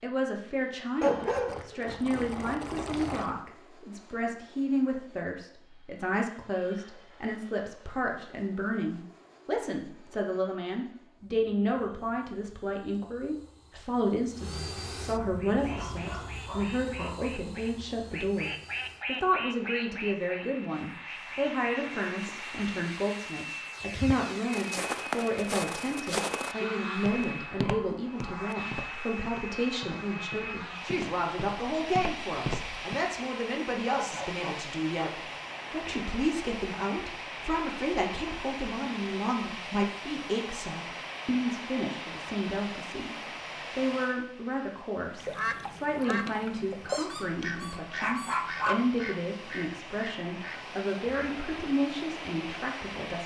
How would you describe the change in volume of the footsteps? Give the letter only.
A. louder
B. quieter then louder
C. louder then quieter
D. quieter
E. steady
B.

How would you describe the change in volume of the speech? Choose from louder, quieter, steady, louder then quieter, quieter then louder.
steady.